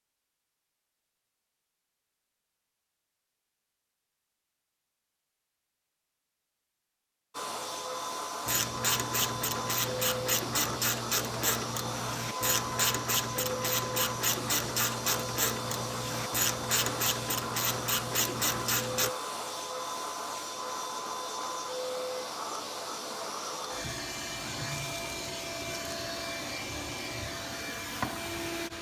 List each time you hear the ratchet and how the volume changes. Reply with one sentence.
You can hear the ratchet from 8.4 to 19.1 s, at a steady volume.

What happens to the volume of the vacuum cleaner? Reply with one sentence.
The loudness of the vacuum cleaner stays about the same.